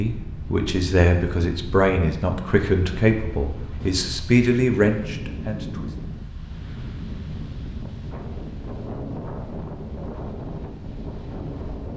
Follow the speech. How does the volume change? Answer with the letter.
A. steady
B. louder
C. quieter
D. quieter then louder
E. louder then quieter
A.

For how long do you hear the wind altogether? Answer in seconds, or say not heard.
12 s.